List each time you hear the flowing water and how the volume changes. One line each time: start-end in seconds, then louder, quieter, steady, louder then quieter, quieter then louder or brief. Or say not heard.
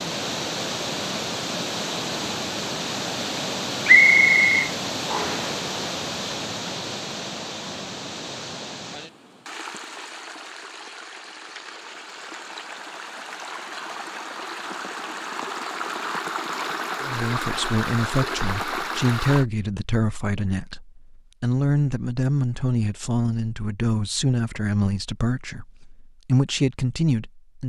0.0-19.4 quieter then louder.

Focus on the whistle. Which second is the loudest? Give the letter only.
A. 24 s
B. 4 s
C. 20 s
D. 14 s
B.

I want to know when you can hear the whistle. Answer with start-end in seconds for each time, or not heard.
3.9-5.5.